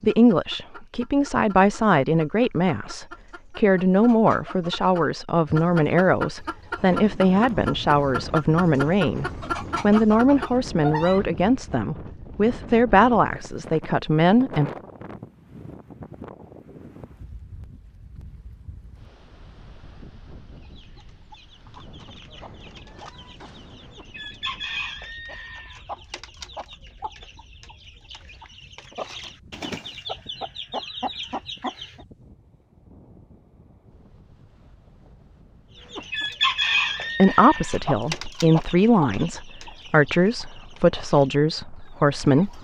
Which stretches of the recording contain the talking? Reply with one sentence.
The talking can be heard from 0.0 to 14.7 s and from 37.1 to 42.6 s.